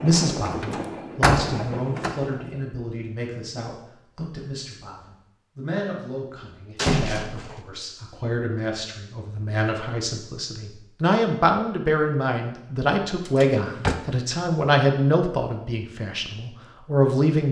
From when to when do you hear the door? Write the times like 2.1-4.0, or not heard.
0.1-2.1, 6.8-7.6, 13.2-13.9.